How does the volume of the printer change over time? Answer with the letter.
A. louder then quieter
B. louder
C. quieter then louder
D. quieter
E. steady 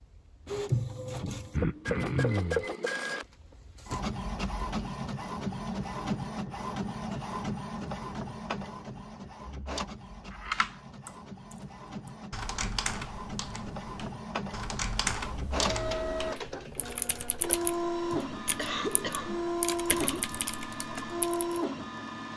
C.